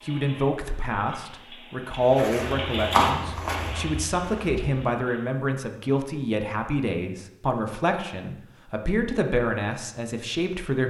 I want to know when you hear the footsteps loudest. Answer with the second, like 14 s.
3 s.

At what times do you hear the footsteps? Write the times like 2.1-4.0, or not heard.
1.9-5.0.